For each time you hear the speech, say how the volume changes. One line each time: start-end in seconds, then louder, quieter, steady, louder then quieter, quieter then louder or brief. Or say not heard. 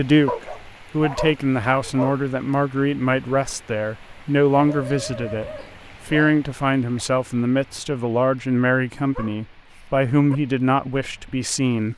0.0-11.9 steady.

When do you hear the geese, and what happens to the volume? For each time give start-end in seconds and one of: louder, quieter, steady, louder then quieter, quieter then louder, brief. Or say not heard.
not heard.